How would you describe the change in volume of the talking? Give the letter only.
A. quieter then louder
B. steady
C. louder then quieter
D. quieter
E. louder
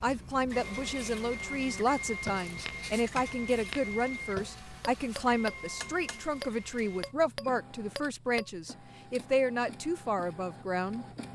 B.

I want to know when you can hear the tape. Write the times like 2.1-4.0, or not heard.
not heard.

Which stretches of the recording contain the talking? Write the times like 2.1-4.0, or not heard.
0.0-11.3.